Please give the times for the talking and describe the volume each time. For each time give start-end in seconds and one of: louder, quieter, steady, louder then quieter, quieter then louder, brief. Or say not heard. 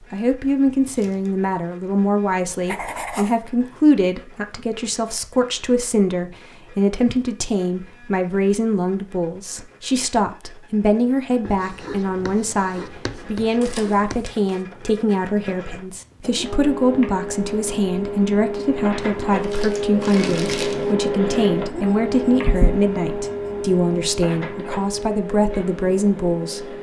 0.0-26.7 steady.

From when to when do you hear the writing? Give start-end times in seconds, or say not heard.
2.5-3.4, 11.4-14.2, 21.9-23.5.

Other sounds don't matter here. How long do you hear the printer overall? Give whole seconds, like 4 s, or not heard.
27 s.